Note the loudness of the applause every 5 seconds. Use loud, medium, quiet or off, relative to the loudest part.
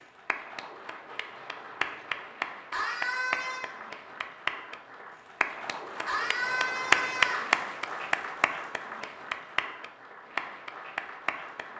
medium, loud, medium.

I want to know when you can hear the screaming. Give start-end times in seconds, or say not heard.
2.7-3.6, 6.0-7.5.